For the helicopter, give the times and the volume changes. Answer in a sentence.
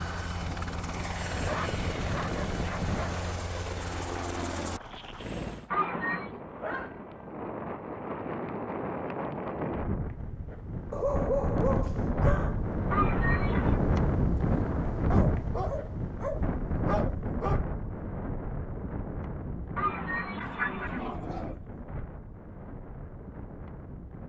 You can hear the helicopter from 0.0 to 5.7 s, at a steady volume.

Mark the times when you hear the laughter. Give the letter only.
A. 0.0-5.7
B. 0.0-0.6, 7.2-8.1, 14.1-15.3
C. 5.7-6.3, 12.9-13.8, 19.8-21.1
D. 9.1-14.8
C.